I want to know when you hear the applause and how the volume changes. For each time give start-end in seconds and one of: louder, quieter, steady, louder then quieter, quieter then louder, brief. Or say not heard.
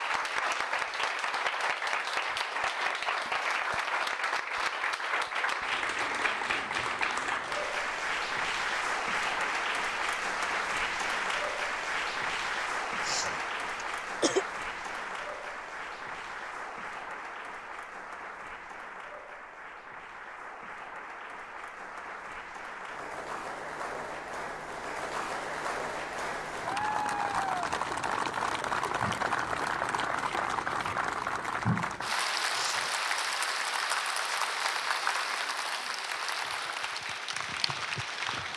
0.0-38.5 quieter then louder.